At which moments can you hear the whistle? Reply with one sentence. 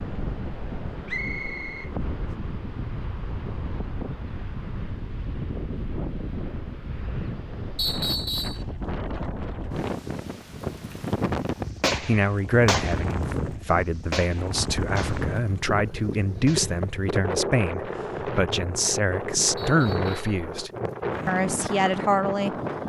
The whistle can be heard from 1.1 to 1.9 s, from 7.8 to 8.6 s and from 19.6 to 20.4 s.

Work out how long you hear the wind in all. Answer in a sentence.
You can hear the wind for 23 seconds altogether.